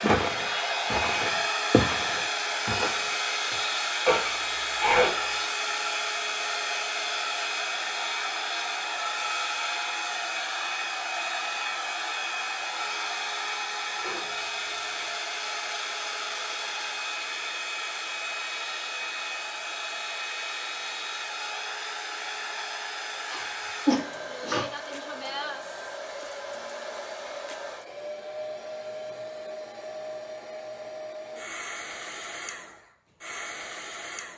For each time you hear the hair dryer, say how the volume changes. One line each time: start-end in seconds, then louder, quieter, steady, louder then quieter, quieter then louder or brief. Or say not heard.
0.0-34.3 quieter.